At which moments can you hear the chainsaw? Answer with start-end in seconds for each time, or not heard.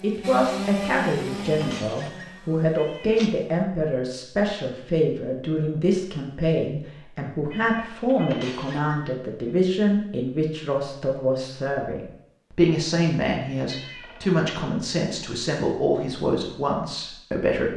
0.0-3.6.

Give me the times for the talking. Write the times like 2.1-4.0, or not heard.
0.0-17.7.